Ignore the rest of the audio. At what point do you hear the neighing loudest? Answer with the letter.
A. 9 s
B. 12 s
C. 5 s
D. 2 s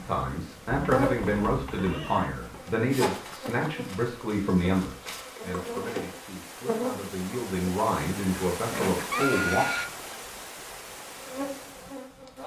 A.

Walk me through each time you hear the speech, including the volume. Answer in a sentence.
The speech can be heard from 0.0 to 9.7 s, getting quieter then louder.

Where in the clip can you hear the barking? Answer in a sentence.
You can't hear the barking here.